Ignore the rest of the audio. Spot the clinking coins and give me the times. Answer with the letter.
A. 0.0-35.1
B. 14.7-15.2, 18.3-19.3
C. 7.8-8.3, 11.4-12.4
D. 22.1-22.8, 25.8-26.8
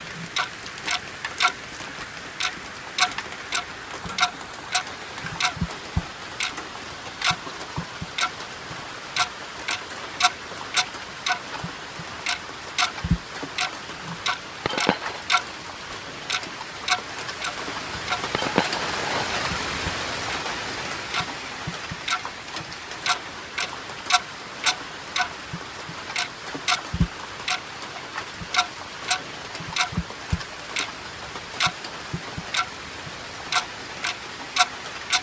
B.